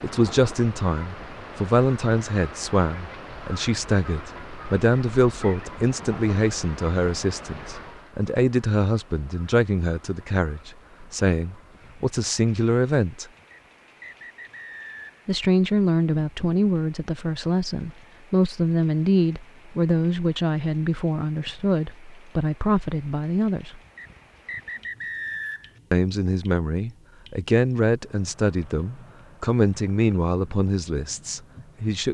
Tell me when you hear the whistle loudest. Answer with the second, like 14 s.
25 s.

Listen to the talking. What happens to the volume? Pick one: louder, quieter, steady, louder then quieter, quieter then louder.
steady.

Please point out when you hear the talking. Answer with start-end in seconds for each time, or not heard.
0.0-13.2, 15.2-23.8, 25.9-32.1.